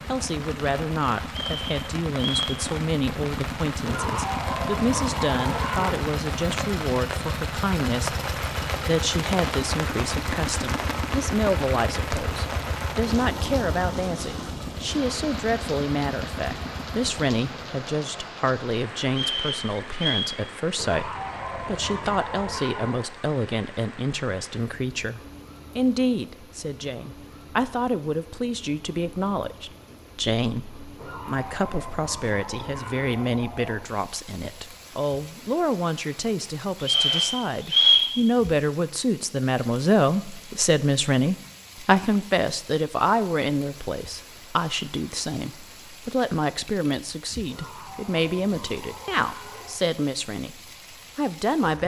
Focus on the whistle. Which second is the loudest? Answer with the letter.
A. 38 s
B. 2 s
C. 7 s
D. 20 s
A.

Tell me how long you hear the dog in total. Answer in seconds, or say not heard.
10 s.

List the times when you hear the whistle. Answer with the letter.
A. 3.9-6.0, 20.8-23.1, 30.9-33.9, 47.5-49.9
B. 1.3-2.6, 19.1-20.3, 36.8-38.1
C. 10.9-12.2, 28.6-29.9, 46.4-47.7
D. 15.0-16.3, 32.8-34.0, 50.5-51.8
B.